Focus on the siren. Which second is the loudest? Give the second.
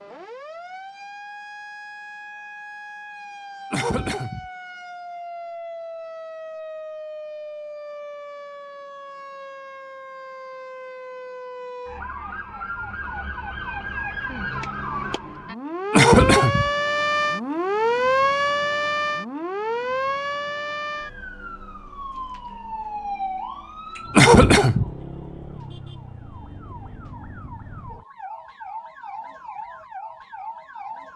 18 s.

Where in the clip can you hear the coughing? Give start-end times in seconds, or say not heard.
3.7-4.5, 15.9-16.7, 24.1-24.9.